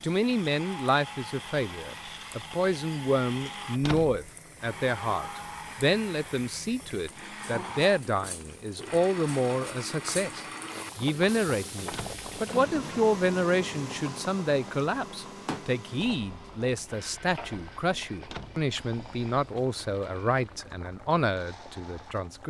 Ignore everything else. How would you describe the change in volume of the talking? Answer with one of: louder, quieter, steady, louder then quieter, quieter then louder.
steady.